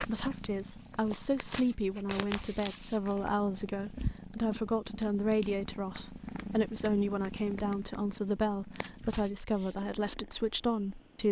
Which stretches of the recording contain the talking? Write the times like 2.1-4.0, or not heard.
0.0-11.2.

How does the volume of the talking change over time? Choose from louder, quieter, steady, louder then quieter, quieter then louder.
steady.